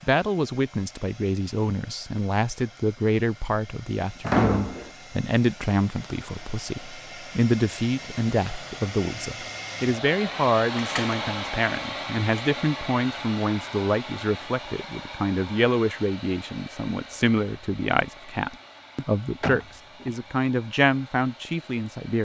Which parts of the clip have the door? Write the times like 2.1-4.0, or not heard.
4.2-4.9, 10.8-11.2, 19.4-20.1.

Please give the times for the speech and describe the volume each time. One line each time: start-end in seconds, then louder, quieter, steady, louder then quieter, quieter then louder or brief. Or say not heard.
0.0-22.1 steady.